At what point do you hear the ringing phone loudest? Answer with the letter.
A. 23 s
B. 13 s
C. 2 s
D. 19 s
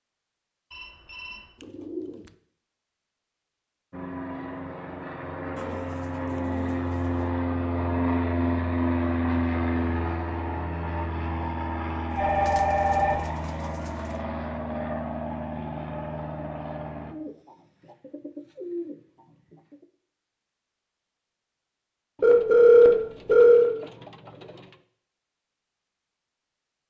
A.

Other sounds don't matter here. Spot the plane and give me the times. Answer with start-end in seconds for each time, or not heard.
3.9-17.1.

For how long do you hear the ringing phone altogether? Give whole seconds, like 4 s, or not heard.
3 s.